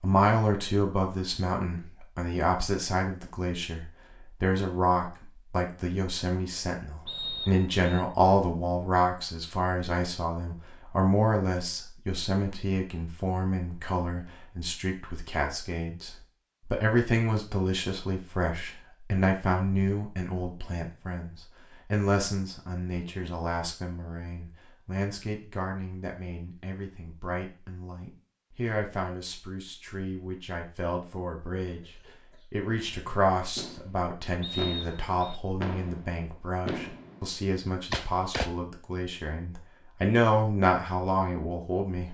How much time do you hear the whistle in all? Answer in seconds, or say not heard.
2 s.